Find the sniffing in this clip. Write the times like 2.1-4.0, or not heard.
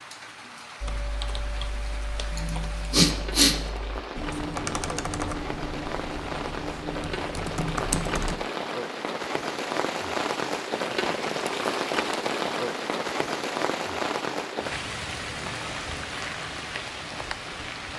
2.3-3.5.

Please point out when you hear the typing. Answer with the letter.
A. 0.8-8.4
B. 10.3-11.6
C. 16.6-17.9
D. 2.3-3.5
A.